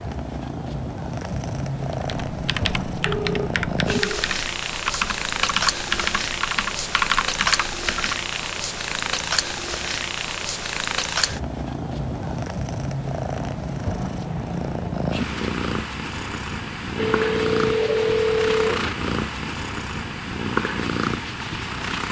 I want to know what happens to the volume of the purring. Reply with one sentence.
The volume of the purring stays about the same.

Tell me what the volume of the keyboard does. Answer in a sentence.
The volume of the keyboard goes up.